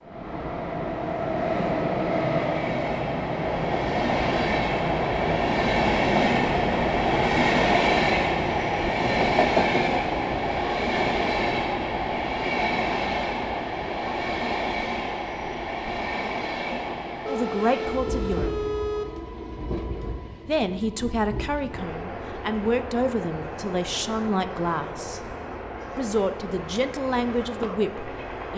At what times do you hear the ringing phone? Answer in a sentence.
The ringing phone can be heard from 17.2 to 19.1 s.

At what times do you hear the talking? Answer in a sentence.
The talking can be heard from 17.2 to 18.6 s, from 20.4 to 25.2 s and from 25.9 to 28.5 s.